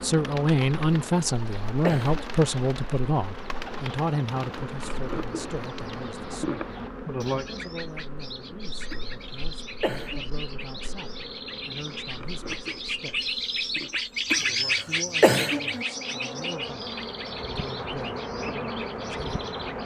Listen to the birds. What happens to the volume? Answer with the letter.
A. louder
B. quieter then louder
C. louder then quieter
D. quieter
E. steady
C.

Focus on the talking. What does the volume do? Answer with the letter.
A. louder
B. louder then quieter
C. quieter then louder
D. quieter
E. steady
D.